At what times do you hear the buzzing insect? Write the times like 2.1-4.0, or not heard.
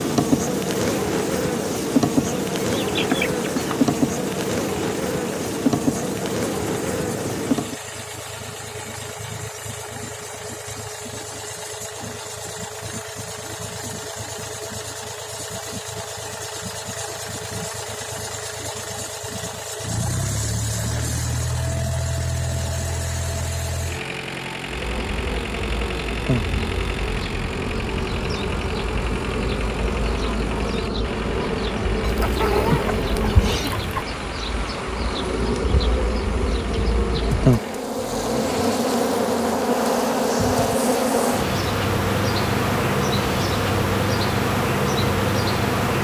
0.0-7.8, 24.6-45.9.